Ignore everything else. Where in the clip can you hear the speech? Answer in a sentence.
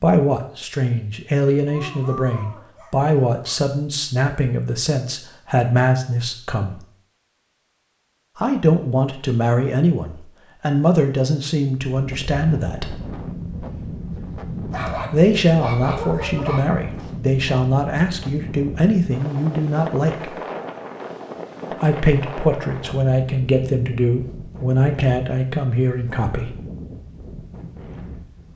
You can hear the speech from 0.0 to 6.8 s, from 8.3 to 13.0 s, from 15.1 to 20.4 s and from 21.7 to 26.6 s.